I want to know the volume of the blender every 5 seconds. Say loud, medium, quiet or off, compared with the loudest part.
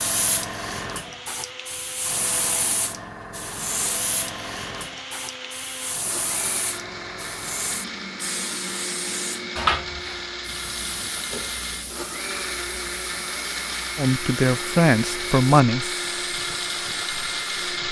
medium, medium, loud, loud.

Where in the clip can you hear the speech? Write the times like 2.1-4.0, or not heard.
13.9-15.8.